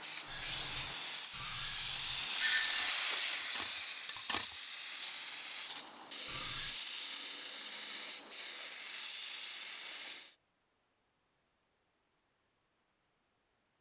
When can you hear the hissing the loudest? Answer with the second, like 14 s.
3 s.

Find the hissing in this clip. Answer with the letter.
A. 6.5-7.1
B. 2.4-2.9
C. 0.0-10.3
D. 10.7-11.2
C.